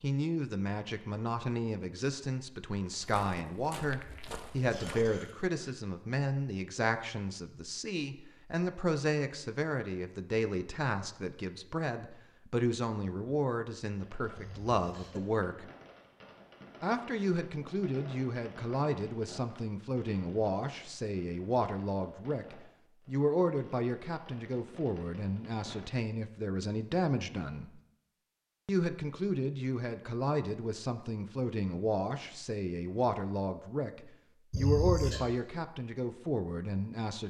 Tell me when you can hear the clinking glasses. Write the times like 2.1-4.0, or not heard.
not heard.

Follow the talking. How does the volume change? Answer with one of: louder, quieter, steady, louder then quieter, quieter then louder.
steady.